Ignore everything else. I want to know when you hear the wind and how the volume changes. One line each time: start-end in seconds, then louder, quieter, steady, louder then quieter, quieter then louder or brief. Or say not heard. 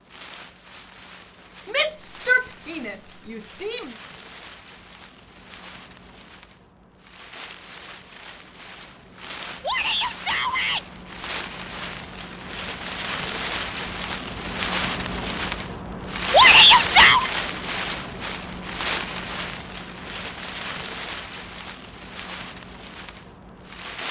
0.0-24.0 louder then quieter.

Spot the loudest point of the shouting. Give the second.
17 s.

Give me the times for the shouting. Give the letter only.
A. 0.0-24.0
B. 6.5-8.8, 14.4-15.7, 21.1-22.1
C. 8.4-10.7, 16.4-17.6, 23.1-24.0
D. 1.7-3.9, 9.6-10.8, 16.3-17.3
D.